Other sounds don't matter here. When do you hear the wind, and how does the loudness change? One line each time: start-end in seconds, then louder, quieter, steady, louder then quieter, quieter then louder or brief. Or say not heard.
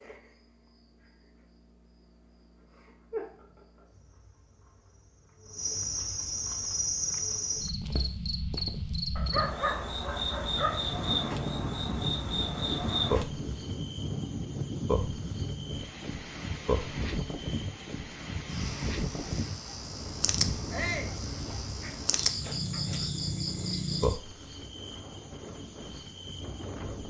10.4-27.0 quieter.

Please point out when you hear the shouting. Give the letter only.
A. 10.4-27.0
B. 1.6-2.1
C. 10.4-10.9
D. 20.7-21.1
D.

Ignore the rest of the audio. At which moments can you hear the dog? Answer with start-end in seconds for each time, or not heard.
9.2-10.9, 21.3-23.1.